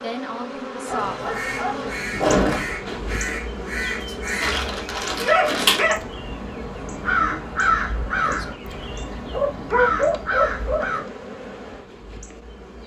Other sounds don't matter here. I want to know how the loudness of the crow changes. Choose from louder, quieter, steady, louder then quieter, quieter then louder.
louder.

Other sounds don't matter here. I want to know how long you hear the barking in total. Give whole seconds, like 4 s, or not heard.
5 s.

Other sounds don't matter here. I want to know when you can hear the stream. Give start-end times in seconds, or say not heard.
not heard.